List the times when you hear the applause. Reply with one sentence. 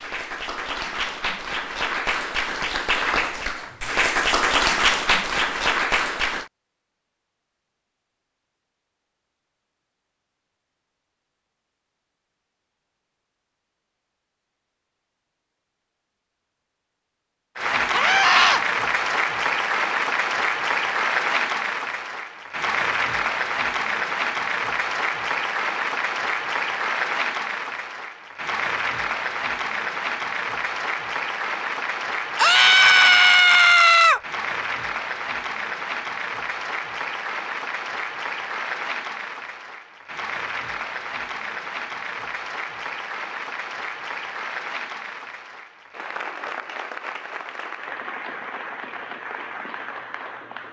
The applause can be heard from 0.0 to 6.5 s and from 17.6 to 50.6 s.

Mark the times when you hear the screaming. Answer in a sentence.
The screaming can be heard from 17.9 to 18.6 s and from 32.4 to 34.2 s.